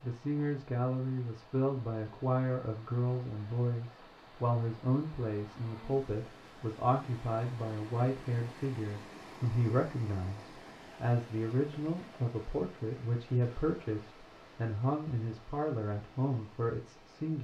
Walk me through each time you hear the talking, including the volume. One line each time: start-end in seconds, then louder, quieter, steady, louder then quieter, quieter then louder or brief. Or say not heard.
0.0-17.3 steady.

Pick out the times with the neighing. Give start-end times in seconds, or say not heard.
not heard.